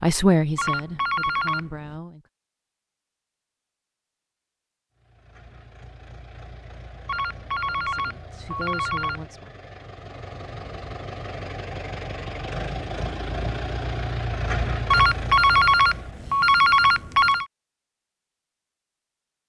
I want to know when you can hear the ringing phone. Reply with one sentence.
The ringing phone can be heard from 0.6 to 1.9 s, from 7.0 to 9.2 s and from 14.9 to 17.4 s.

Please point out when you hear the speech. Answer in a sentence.
The speech can be heard from 0.0 to 2.2 s and from 7.7 to 9.5 s.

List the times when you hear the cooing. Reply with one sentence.
The cooing can't be heard in this clip.